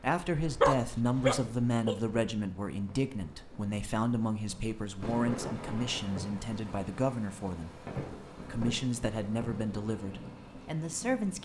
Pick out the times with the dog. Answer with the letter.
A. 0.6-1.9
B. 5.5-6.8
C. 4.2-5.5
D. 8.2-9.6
A.